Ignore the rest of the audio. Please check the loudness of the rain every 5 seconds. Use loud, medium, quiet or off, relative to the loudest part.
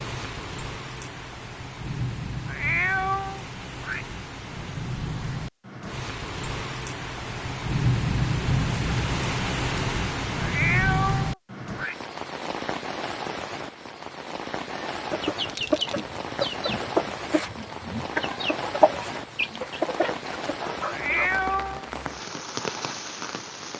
medium, loud, loud, medium, medium.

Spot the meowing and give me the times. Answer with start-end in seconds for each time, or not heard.
2.5-4.0, 10.4-11.9, 20.9-21.9.